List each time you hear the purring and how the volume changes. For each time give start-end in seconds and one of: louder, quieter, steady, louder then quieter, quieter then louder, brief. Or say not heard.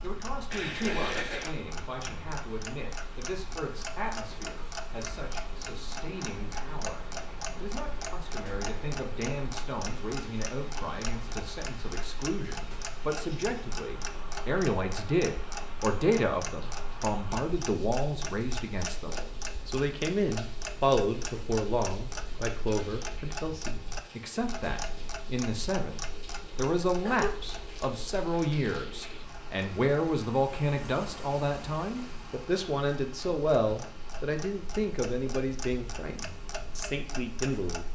not heard.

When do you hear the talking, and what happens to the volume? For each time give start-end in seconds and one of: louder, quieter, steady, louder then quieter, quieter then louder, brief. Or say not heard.
0.0-37.9 louder.